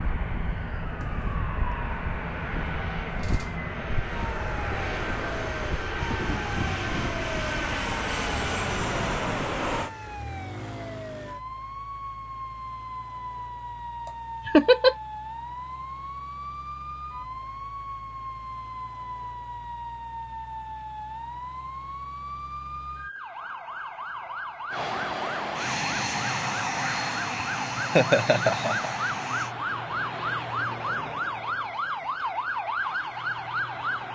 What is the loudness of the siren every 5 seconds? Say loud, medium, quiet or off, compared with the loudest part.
medium, medium, medium, medium, medium, loud, loud.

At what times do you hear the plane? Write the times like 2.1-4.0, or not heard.
0.0-9.9, 24.7-29.6.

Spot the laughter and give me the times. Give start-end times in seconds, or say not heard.
14.1-14.9, 27.8-28.9.